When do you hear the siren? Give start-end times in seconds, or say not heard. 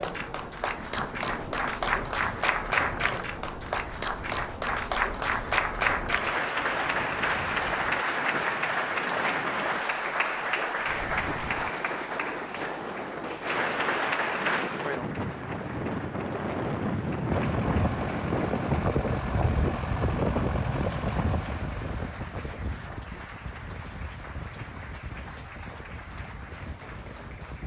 not heard.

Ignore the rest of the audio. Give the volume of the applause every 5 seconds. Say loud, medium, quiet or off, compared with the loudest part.
loud, loud, loud, quiet, quiet, quiet.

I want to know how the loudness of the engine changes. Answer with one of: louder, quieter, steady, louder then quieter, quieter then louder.
quieter.